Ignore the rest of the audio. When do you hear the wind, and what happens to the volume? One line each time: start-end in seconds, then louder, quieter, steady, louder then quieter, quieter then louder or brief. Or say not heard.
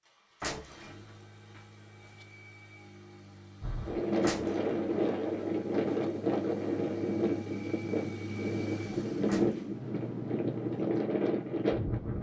3.6-12.1 steady.